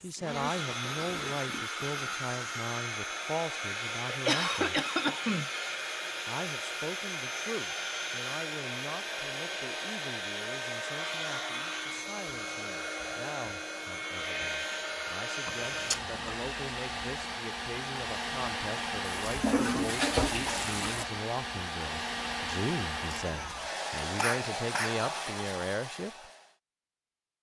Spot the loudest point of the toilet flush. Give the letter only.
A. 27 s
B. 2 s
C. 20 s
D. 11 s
C.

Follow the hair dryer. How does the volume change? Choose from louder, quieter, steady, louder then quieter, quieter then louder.
steady.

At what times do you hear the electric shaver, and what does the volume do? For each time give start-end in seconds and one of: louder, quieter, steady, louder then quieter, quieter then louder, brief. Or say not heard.
not heard.